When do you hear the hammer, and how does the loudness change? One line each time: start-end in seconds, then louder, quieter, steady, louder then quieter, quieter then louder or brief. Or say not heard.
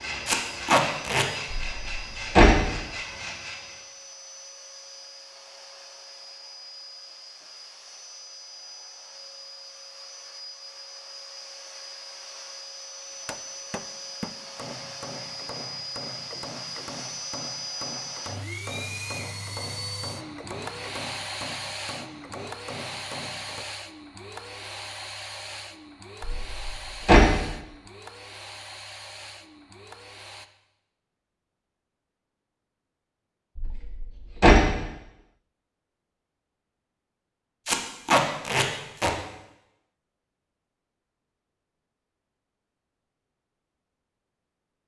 13.2-23.7 steady.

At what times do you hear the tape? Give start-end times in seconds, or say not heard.
0.2-1.2, 37.6-39.1.